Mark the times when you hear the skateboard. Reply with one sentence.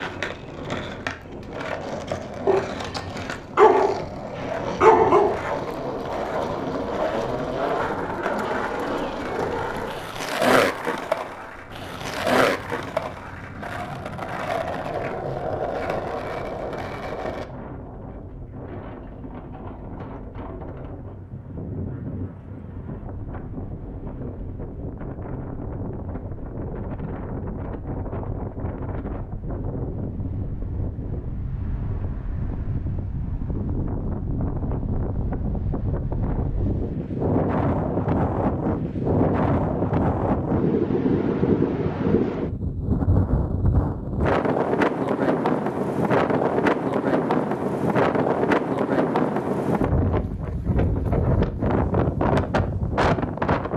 You can hear the skateboard from 0.0 to 17.4 s.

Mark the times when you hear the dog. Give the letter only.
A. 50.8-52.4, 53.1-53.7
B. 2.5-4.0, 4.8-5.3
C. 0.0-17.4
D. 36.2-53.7
B.